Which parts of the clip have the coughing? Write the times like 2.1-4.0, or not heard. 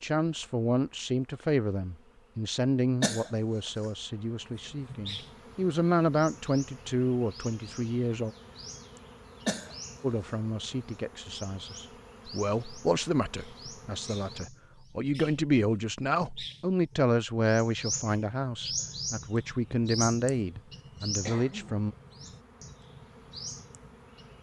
3.0-3.9, 9.4-10.3, 21.2-21.8.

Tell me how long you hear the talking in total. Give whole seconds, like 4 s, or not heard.
20 s.